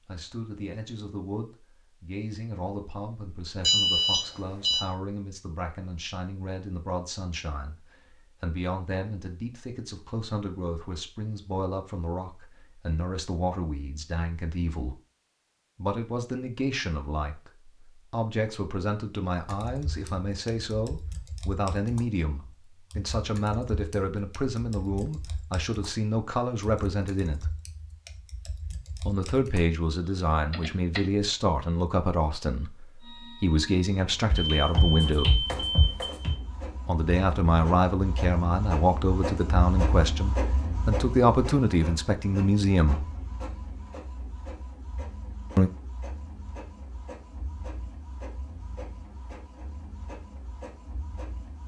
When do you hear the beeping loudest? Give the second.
4 s.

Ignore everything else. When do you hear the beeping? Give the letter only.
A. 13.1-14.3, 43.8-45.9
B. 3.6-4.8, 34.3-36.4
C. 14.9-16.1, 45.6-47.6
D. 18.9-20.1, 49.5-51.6
B.